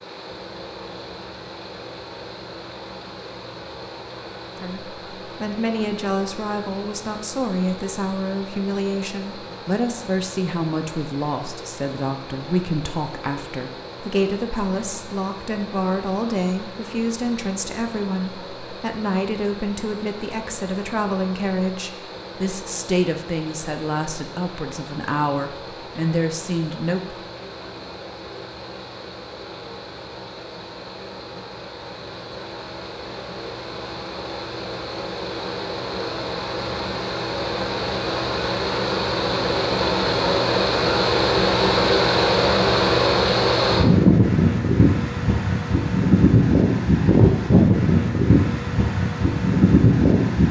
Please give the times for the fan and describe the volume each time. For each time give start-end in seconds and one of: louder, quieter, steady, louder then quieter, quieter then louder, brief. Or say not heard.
0.0-50.4 louder.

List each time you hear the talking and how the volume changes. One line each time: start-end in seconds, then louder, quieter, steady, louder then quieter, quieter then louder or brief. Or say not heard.
4.6-27.1 steady.